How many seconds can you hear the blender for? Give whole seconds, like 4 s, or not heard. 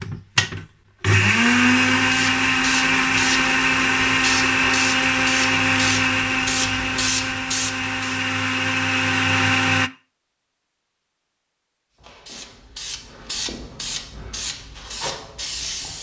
10 s.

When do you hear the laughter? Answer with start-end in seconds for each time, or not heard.
not heard.